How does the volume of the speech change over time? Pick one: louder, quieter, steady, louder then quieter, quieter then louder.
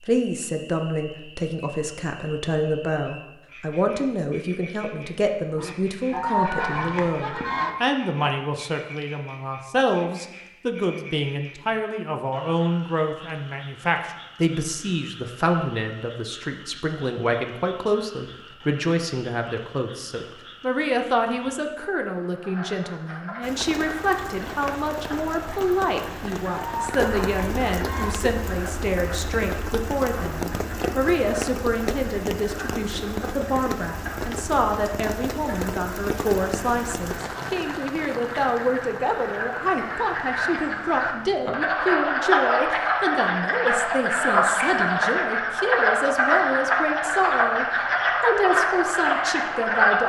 steady.